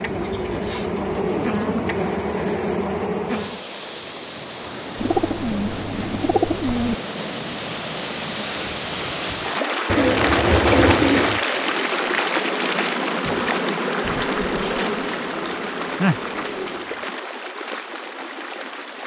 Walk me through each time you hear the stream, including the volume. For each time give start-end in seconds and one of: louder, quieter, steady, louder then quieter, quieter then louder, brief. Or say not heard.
3.2-19.0 louder then quieter.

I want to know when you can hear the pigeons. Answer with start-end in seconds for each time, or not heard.
0.1-2.1, 5.0-7.0, 9.9-11.4, 14.4-17.1.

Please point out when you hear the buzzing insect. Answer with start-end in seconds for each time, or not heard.
0.0-3.6, 11.4-16.6.